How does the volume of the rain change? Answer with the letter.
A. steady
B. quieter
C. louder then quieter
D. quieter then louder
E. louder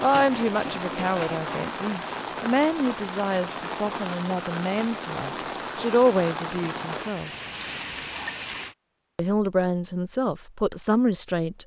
A.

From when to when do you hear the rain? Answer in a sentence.
You can hear the rain from 0.0 to 8.8 s.